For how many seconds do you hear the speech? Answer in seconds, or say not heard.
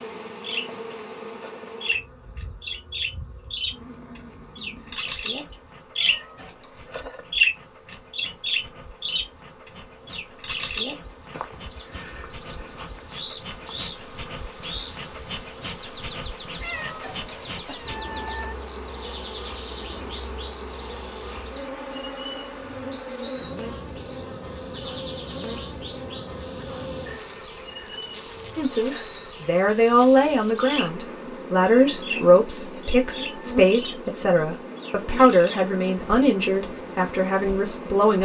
10 s.